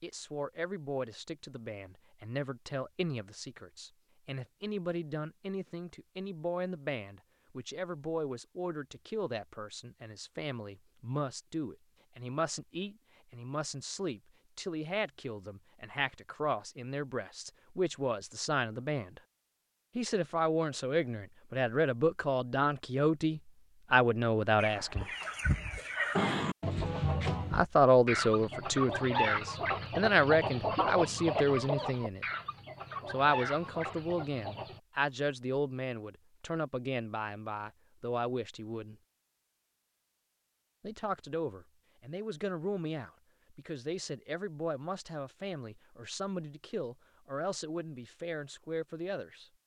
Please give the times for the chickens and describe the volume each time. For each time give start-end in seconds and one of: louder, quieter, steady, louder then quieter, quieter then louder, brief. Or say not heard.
24.6-34.8 quieter.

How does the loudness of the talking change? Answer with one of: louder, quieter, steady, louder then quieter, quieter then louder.
louder then quieter.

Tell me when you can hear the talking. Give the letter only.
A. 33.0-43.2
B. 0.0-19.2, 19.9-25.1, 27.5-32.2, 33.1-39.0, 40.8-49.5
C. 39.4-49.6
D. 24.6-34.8
B.